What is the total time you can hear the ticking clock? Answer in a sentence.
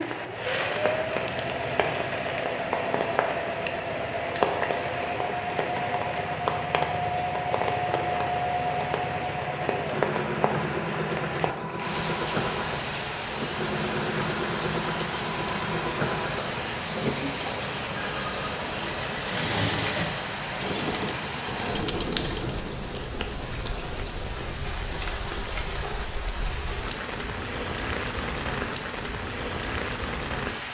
The ticking clock can't be heard in this clip.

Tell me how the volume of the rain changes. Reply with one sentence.
The loudness of the rain stays about the same.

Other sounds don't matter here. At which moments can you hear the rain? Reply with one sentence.
The rain can be heard from 0.0 to 30.7 s.